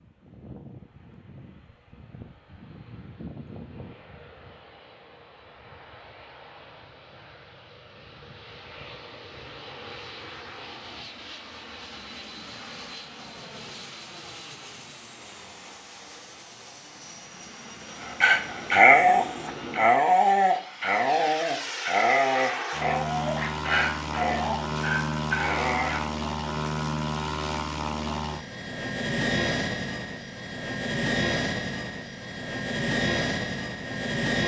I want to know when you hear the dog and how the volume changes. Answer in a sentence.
You can hear the dog from 18.2 to 26.1 s, getting quieter.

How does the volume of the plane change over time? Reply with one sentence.
The loudness of the plane goes up.